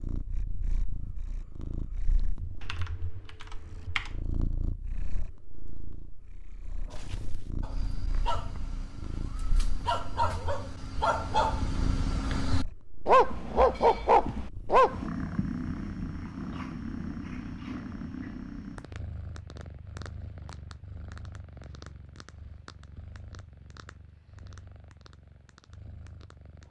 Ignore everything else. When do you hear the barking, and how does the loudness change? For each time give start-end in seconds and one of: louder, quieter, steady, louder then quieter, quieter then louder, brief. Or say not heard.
6.7-15.1 louder.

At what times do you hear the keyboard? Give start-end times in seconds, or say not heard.
2.6-4.2.